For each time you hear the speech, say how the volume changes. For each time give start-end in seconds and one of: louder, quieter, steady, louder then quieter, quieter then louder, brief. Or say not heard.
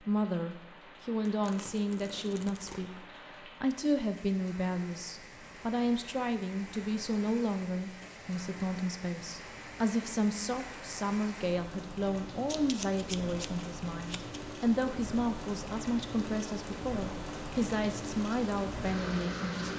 0.0-19.7 steady.